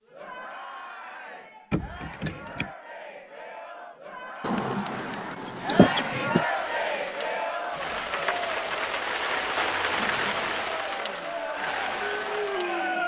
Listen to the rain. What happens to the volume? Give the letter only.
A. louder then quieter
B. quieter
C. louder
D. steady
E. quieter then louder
A.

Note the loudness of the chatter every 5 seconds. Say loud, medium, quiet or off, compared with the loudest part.
medium, loud, loud.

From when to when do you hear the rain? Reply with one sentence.
You can hear the rain from 6.4 to 12.9 s.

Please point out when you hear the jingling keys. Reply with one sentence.
The jingling keys can be heard from 1.7 to 2.6 s, from 4.4 to 6.5 s and from 9.9 to 10.8 s.